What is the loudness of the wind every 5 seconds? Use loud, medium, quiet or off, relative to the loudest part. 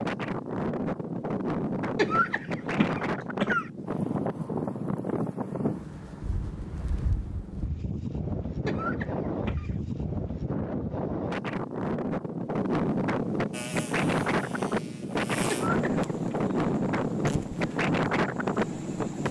loud, medium, loud, loud.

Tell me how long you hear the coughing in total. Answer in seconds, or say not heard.
4 s.